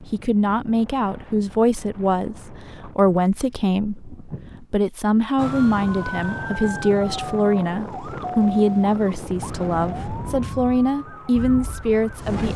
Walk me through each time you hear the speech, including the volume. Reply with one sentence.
You can hear the speech from 0.1 to 12.5 s, at a steady volume.